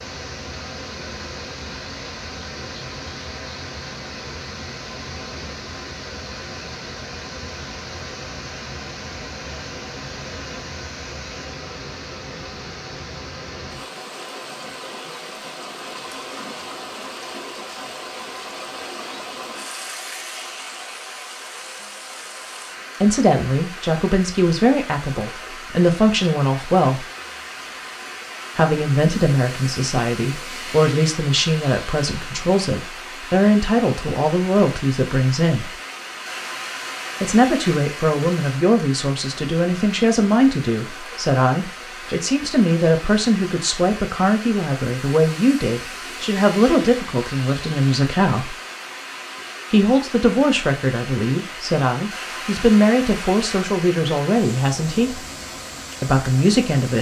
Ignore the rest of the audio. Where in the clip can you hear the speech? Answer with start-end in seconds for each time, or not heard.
23.0-27.1, 28.6-35.8, 37.2-48.5, 49.7-55.2, 56.0-56.9.